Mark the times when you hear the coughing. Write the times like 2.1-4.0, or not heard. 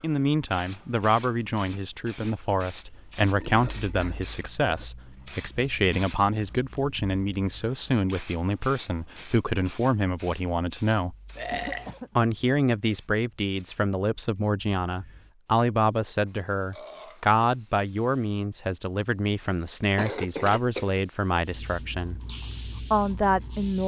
3.5-4.8, 11.5-12.2, 19.9-21.0.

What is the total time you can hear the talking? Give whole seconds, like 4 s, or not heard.
22 s.